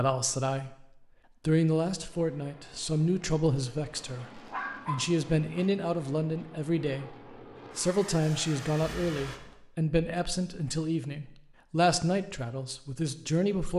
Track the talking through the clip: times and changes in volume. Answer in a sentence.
The talking can be heard briefly from 0.0 to 0.8 s; and from 1.4 to 13.7 s, at a steady volume.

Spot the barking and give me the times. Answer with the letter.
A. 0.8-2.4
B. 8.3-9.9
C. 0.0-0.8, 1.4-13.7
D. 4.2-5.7
D.